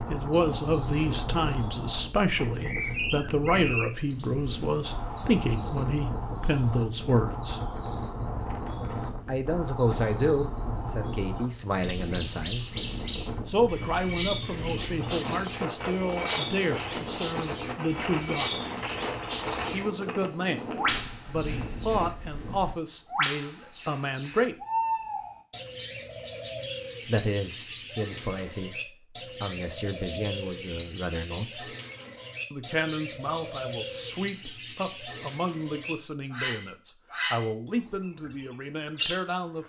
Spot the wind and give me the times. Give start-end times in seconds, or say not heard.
0.0-22.8.